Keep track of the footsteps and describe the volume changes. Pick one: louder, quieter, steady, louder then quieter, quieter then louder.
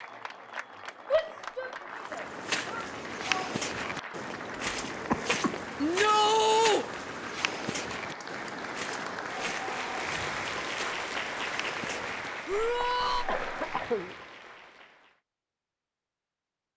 quieter.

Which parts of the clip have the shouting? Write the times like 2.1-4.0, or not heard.
1.1-3.5, 5.8-6.8, 12.4-13.2.